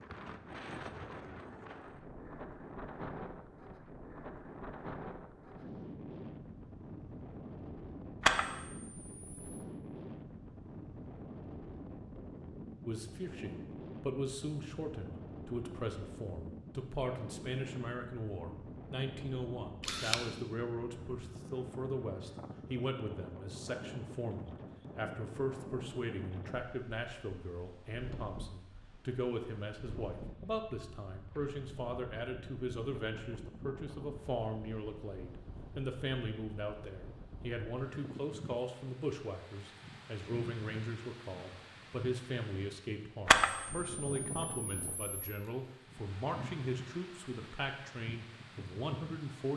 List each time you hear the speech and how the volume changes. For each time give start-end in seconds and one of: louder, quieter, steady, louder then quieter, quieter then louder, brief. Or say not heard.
12.8-49.5 steady.